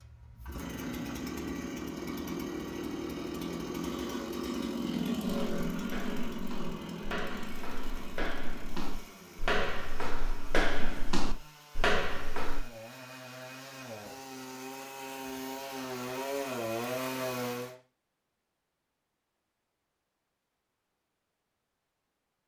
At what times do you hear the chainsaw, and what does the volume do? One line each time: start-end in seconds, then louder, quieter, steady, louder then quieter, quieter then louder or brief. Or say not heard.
0.0-17.8 quieter then louder.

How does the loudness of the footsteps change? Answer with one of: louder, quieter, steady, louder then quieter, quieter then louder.
louder.